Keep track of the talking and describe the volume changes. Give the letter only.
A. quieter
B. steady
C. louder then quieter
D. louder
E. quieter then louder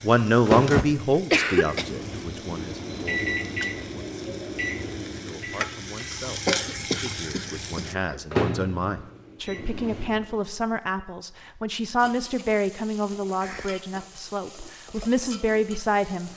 E.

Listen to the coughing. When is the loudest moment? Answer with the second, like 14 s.
1 s.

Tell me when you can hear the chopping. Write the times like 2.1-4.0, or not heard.
not heard.